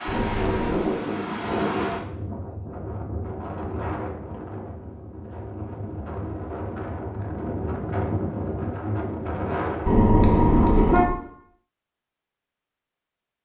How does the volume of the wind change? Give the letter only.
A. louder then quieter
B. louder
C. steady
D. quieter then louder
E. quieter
D.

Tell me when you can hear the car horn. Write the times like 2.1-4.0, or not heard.
0.1-0.8, 9.8-11.1.